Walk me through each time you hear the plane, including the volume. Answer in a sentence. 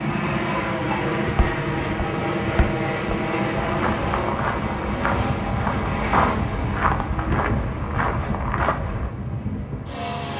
The plane can be heard from 0.0 to 10.3 s, getting quieter.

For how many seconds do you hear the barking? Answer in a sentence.
The barking can't be heard in this clip.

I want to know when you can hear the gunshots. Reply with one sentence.
You can hear the gunshots from 6.0 to 6.5 s.